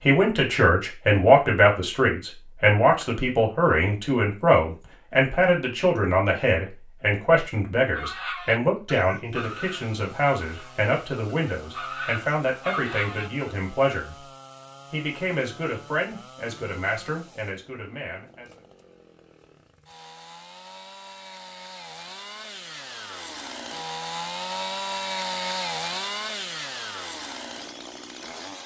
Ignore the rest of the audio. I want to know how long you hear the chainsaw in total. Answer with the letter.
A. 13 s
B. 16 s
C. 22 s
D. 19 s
D.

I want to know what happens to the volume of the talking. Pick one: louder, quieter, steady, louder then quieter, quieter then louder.
quieter.